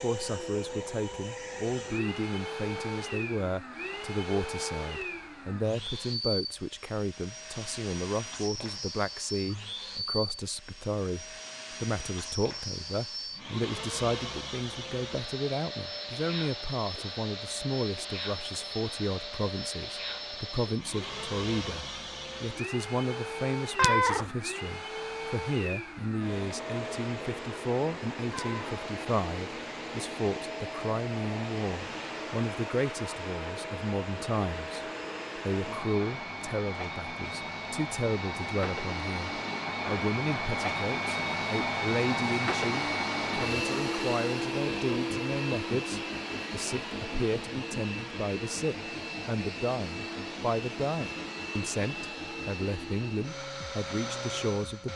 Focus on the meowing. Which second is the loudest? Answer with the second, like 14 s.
24 s.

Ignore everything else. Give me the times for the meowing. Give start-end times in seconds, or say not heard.
23.8-24.3, 28.3-28.8.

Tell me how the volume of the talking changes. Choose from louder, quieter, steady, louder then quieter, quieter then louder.
steady.